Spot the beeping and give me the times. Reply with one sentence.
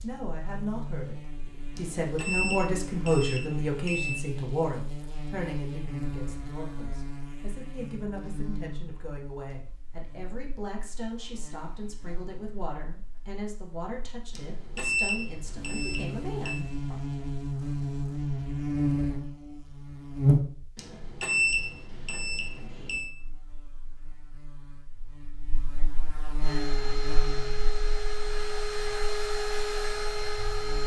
The beeping can be heard from 1.8 to 4.2 s, from 14.3 to 16.6 s and from 20.8 to 23.1 s.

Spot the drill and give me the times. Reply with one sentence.
The drill can be heard from 26.4 to 30.8 s.